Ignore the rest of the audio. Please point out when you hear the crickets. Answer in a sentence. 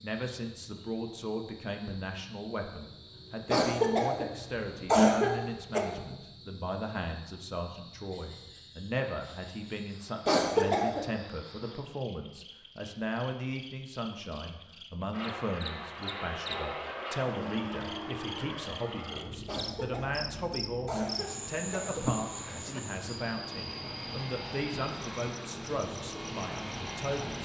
The crickets can be heard from 0.0 to 27.4 s.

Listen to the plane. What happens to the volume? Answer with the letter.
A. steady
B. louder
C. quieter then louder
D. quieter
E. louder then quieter
C.